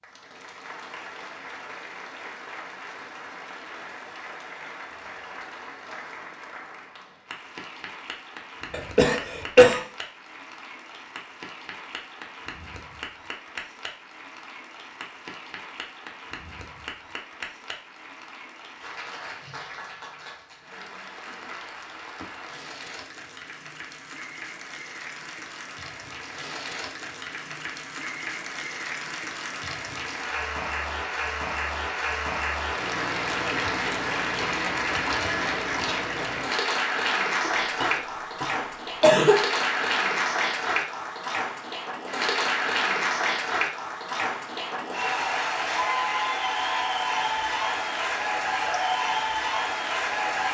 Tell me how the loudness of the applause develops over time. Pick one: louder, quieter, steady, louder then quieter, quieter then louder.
louder.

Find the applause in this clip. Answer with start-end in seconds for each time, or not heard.
0.0-50.4.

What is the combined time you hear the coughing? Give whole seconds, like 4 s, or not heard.
3 s.